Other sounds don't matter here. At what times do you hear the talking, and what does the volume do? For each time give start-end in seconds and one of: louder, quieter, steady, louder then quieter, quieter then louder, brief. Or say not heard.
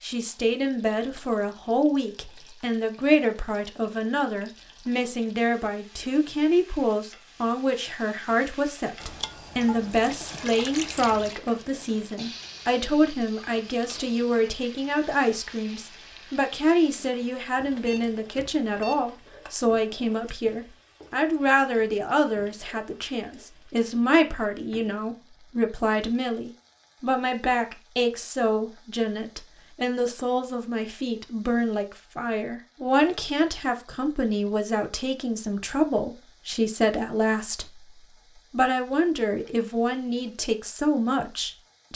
0.0-41.9 steady.